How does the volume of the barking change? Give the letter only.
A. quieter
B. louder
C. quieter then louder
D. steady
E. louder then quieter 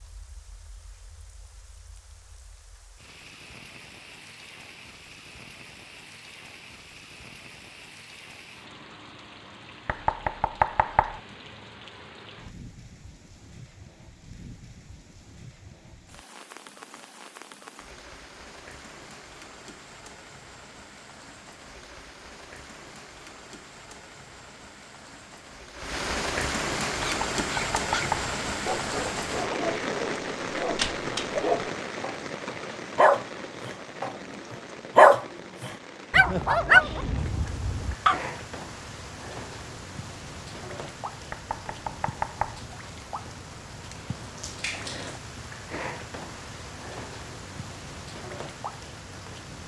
E.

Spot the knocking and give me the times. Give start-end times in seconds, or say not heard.
9.8-11.2, 27.0-28.3, 41.3-42.6.